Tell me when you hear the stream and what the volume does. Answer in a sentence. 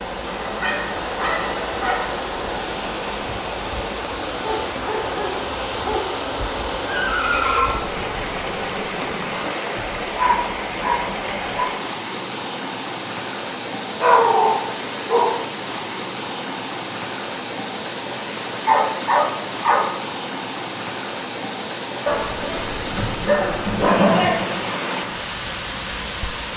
The stream can be heard from 0.0 to 26.5 s, at a steady volume.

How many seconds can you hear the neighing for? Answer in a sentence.
The neighing can be heard for 2 seconds in total.